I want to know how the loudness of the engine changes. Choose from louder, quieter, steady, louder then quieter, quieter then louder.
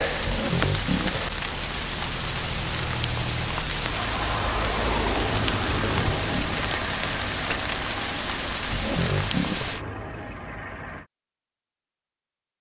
louder then quieter.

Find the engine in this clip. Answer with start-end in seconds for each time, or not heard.
0.0-11.1.